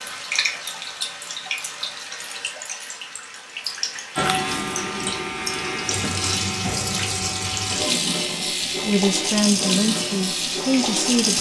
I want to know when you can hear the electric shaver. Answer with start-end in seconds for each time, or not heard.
4.2-11.3.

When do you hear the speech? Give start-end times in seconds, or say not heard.
8.8-11.3.